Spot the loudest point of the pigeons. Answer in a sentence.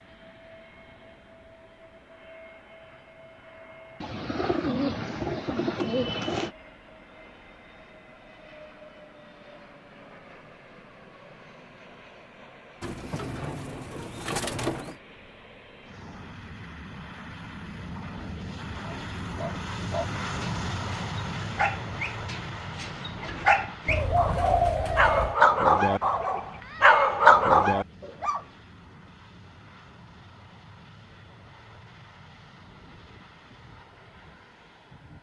The volume of the pigeons peaks at 25 seconds.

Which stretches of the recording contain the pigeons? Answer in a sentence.
The pigeons can be heard from 4.0 to 6.5 s, from 12.8 to 14.9 s and from 23.9 to 25.4 s.